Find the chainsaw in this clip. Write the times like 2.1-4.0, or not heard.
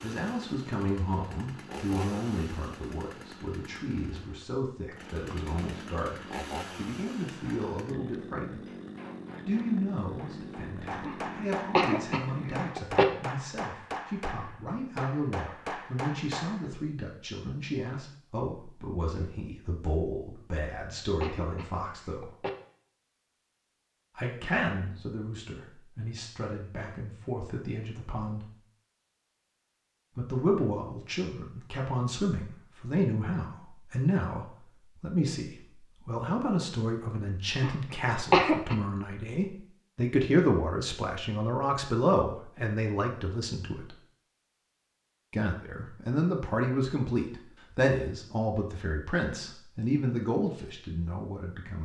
0.0-12.7.